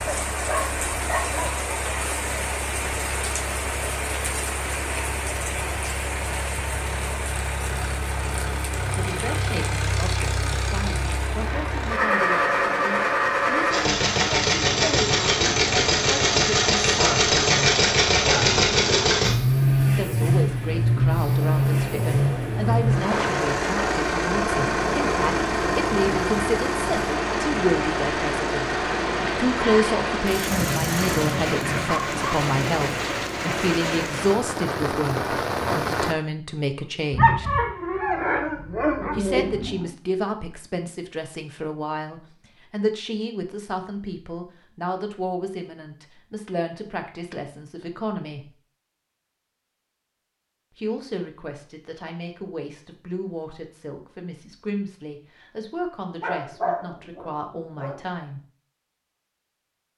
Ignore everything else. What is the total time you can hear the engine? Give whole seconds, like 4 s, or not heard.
31 s.